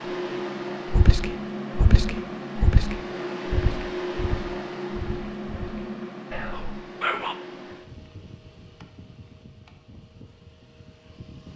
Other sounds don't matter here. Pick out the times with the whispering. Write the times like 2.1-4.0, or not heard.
0.9-7.3.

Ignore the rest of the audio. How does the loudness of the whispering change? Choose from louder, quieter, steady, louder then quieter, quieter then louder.
quieter then louder.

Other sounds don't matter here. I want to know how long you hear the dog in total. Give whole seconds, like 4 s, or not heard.
not heard.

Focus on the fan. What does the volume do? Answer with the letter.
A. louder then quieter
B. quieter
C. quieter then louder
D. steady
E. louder
B.